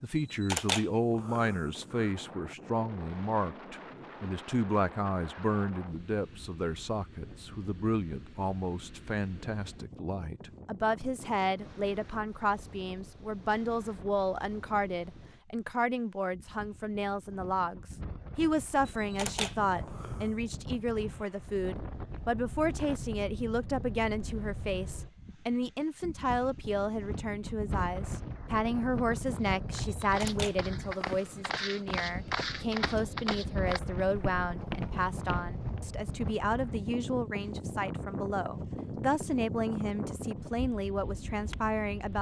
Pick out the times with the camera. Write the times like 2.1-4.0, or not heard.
0.1-2.1, 18.9-20.4, 30.0-31.9.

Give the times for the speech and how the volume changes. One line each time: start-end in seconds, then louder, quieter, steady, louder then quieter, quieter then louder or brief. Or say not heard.
0.0-42.1 steady.